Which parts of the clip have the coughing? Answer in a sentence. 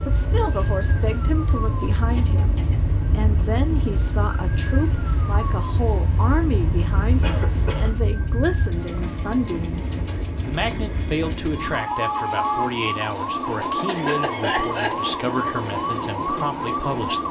You can hear the coughing from 1.6 to 2.8 s, from 7.2 to 7.9 s and from 13.8 to 14.9 s.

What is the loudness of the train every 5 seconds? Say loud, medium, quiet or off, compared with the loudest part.
medium, medium, loud, loud.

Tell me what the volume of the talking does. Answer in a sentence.
The volume of the talking stays about the same.